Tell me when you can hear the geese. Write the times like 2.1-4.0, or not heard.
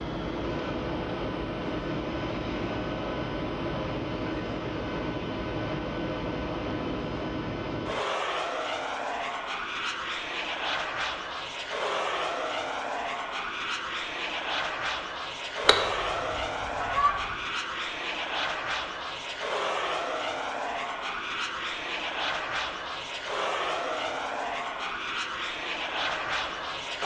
15.7-17.4.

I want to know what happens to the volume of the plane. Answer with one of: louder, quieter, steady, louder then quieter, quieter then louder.
steady.